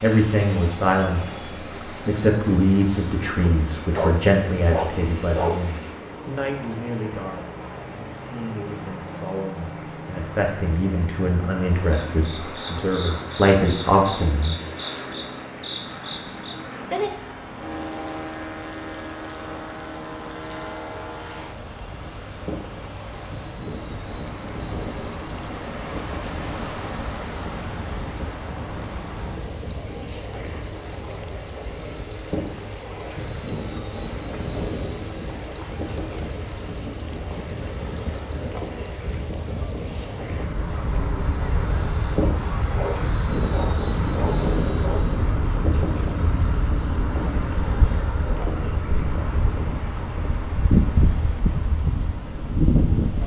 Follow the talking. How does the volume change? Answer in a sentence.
The volume of the talking goes down, then up.